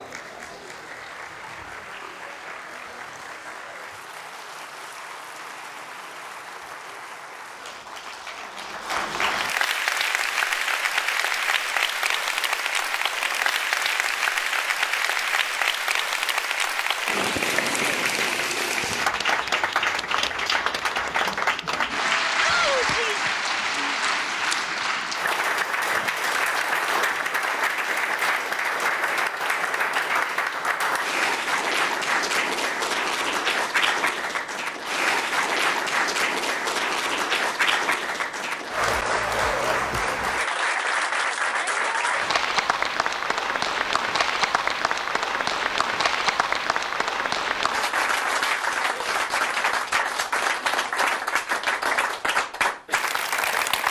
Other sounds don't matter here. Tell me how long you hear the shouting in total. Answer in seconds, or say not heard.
2 s.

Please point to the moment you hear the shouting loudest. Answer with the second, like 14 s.
23 s.